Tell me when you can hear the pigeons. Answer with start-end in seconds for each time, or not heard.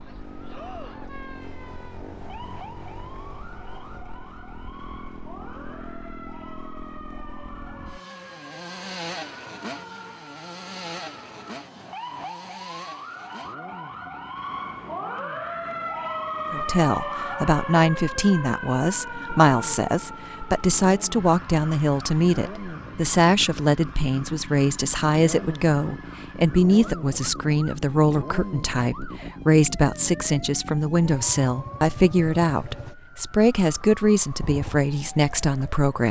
not heard.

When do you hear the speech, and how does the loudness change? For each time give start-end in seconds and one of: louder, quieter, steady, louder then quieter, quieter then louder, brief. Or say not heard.
16.5-36.0 steady.